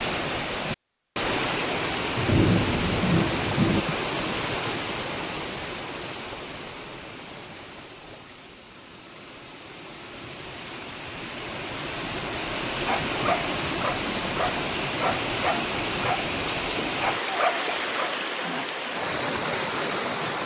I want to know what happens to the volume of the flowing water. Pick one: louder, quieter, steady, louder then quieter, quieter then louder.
quieter then louder.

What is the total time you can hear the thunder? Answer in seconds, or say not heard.
2 s.